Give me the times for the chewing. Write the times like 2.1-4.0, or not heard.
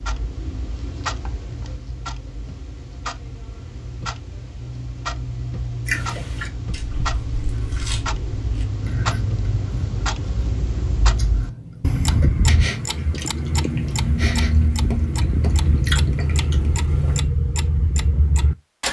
5.8-17.2.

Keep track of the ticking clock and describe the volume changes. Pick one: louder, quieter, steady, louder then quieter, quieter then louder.
louder.